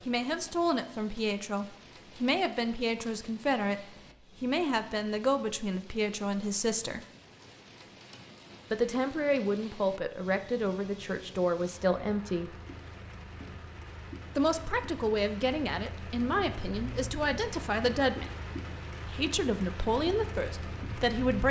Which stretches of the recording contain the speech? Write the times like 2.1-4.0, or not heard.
0.1-7.0, 8.7-12.6, 14.3-18.3, 19.1-21.4.